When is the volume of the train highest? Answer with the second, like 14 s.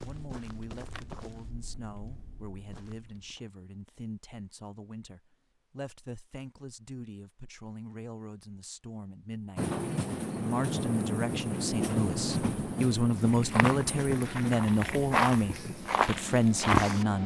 12 s.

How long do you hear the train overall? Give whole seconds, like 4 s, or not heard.
8 s.